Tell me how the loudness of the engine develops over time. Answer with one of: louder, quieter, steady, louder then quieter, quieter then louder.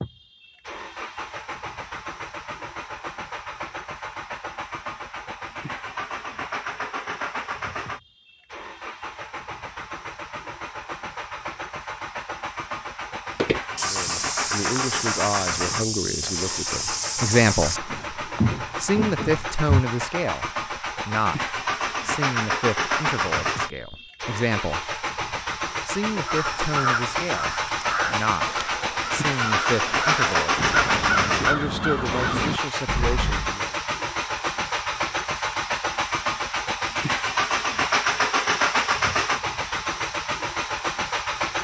louder.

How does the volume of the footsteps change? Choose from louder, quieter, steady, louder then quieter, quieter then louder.
steady.